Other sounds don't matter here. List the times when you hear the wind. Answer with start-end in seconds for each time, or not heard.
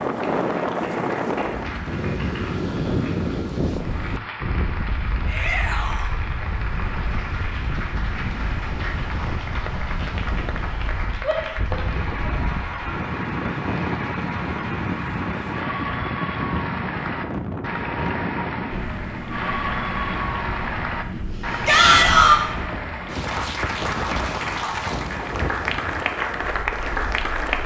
0.0-27.4.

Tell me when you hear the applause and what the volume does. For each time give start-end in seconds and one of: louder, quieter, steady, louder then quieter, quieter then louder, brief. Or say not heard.
0.0-27.6 louder.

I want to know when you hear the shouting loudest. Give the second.
22 s.